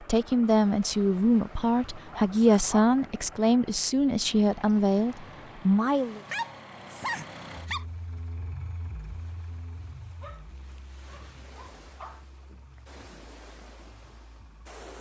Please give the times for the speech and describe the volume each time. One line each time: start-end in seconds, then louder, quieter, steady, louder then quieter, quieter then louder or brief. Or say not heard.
0.0-6.2 steady.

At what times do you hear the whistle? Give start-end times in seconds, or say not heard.
not heard.